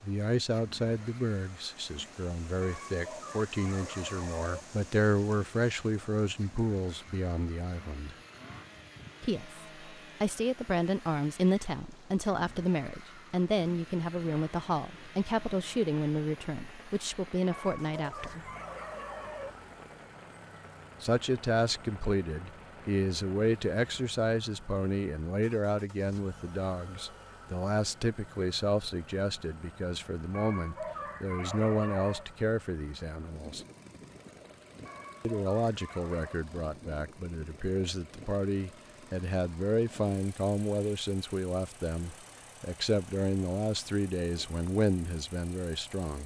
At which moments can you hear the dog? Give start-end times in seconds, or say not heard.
2.6-4.7, 17.5-19.5, 30.3-32.2, 34.9-36.4.